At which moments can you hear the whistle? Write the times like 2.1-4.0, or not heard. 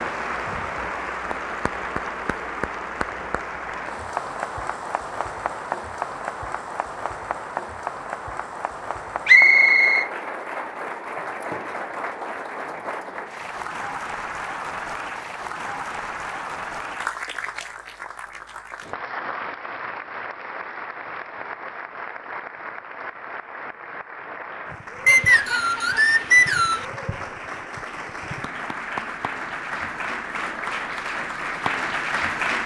9.2-10.1, 25.1-26.9.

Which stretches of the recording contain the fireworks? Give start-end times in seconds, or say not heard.
not heard.